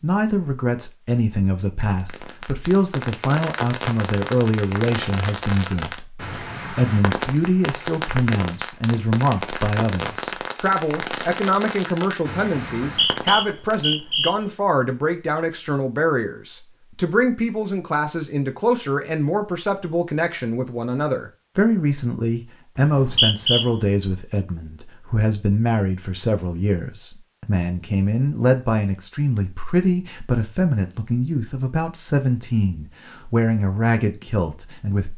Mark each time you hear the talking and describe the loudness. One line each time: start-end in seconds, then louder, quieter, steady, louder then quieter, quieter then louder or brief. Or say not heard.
0.0-35.1 steady.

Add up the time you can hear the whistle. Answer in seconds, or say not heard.
2 s.